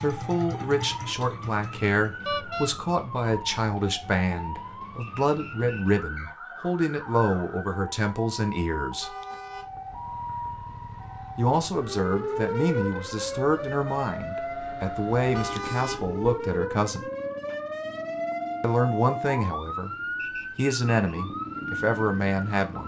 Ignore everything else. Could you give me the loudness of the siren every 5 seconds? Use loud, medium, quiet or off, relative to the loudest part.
medium, medium, loud, loud, loud.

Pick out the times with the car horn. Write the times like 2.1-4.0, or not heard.
2.2-2.7, 9.0-9.9, 15.3-16.4.